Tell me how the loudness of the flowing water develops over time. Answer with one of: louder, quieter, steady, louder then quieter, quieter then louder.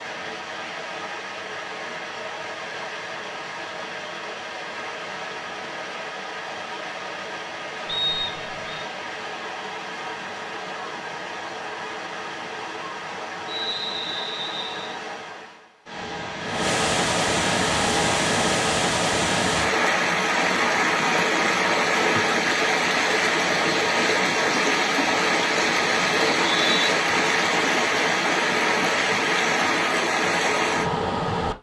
louder.